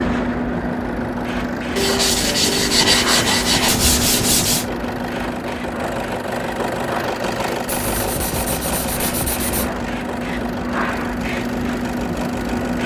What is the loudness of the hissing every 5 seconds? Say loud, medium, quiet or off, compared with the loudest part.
loud, medium, loud.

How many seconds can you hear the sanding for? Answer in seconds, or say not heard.
5 s.